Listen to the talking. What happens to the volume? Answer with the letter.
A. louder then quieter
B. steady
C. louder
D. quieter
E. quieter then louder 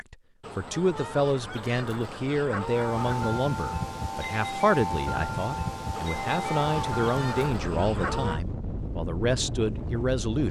B.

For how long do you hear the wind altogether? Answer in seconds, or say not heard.
8 s.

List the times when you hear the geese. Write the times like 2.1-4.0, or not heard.
0.4-3.4, 5.9-8.4.